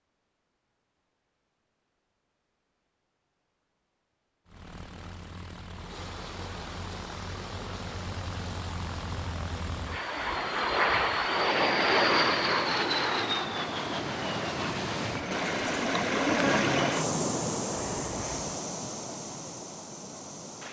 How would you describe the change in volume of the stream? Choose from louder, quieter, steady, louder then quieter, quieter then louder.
louder then quieter.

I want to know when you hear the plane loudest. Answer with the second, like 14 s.
12 s.